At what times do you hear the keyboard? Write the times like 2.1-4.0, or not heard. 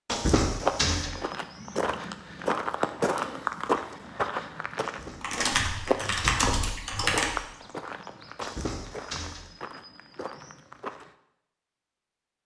5.2-7.3.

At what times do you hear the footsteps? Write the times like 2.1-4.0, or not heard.
0.4-11.2.